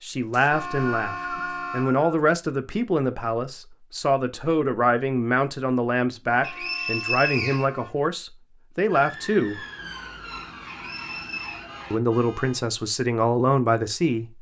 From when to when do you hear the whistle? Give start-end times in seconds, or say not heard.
0.3-2.2, 6.4-7.7, 10.7-11.7.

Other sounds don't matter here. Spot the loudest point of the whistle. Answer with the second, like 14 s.
7 s.